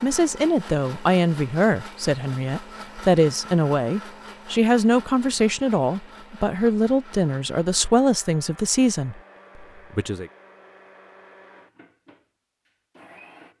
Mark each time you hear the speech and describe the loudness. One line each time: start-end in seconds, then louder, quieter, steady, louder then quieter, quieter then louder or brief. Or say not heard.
0.0-10.3 steady.